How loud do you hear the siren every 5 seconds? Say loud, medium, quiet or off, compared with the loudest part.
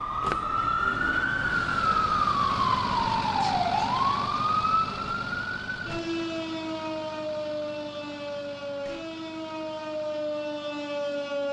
loud, medium, medium.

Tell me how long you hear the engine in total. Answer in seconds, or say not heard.
10 s.